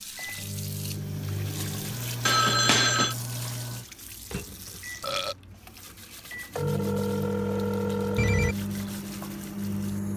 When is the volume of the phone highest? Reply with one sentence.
The loudest moment of the phone is at 3 seconds.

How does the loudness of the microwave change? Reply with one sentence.
The volume of the microwave goes down, then up.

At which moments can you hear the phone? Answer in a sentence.
You can hear the phone from 2.2 to 3.1 s and from 6.5 to 8.6 s.